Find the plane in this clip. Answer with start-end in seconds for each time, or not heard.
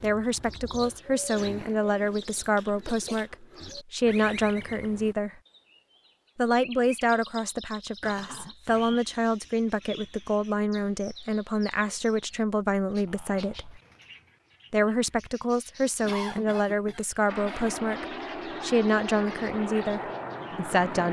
17.2-21.0.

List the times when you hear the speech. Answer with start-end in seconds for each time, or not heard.
0.0-5.3, 6.3-13.8, 14.7-21.0.